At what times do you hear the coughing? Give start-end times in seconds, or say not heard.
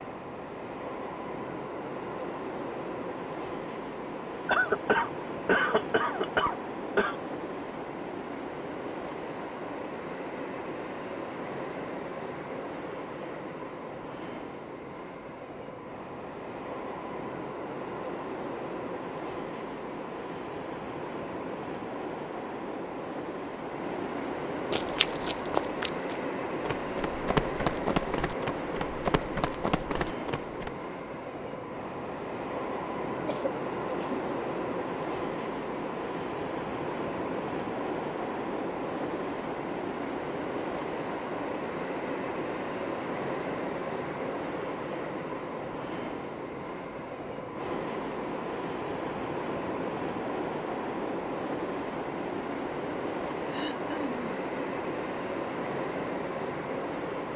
4.5-7.2, 33.2-34.2, 53.5-54.2.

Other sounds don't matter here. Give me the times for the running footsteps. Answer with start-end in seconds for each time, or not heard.
24.7-30.7.